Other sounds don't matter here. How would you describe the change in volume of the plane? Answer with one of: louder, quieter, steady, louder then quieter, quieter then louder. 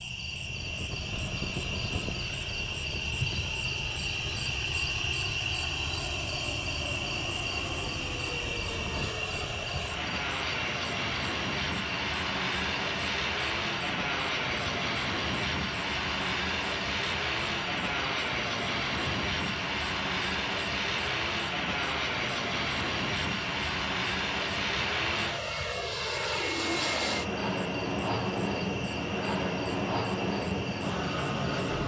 louder.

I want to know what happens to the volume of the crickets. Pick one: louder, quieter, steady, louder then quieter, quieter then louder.
quieter.